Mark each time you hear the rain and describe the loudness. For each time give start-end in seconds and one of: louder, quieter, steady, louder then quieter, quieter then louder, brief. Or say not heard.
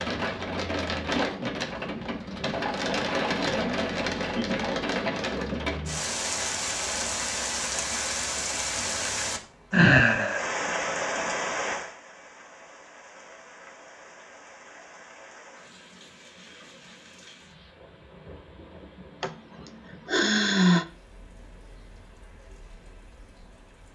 0.0-23.9 quieter.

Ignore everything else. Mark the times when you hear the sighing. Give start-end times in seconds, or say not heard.
9.7-10.4, 19.2-20.9.